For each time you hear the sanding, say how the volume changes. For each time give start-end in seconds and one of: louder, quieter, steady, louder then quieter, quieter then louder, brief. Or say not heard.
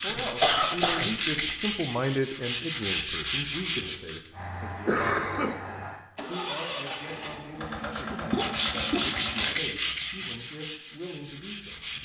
0.0-4.2 quieter then louder
7.8-12.0 quieter.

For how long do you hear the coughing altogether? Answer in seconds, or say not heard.
3 s.